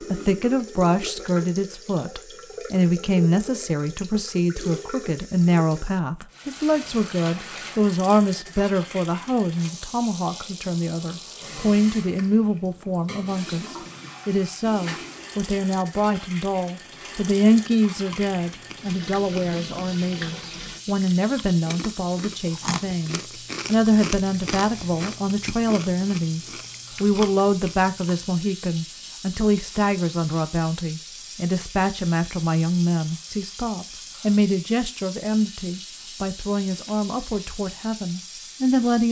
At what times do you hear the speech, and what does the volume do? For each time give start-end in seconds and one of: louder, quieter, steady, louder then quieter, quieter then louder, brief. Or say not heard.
0.0-39.0 steady.